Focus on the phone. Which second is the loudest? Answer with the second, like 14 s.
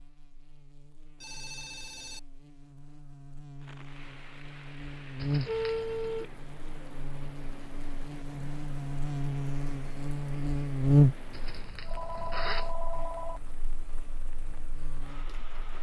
6 s.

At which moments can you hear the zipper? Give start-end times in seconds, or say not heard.
5.2-6.2, 11.3-12.8.